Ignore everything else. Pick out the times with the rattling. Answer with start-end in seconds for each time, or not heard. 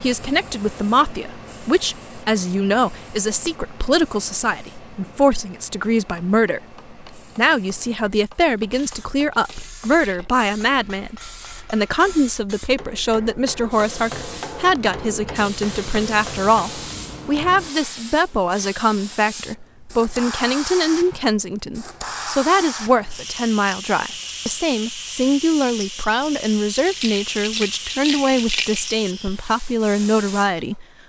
9.3-10.4, 26.8-28.9.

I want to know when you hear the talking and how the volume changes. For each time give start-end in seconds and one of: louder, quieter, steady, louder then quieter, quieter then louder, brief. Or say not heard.
0.0-30.9 steady.